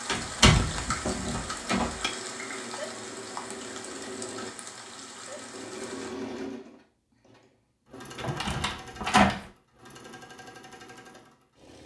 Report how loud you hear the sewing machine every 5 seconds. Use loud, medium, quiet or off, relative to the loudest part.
loud, loud, medium.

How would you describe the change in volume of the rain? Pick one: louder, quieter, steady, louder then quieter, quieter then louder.
quieter.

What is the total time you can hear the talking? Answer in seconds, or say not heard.
not heard.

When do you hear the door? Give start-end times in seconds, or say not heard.
0.1-2.1, 8.2-9.4.